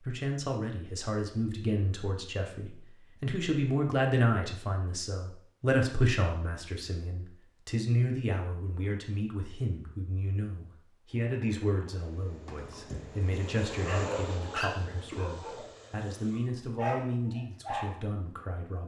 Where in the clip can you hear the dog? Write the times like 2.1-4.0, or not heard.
12.4-15.7, 16.3-17.9.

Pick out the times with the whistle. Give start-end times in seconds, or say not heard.
not heard.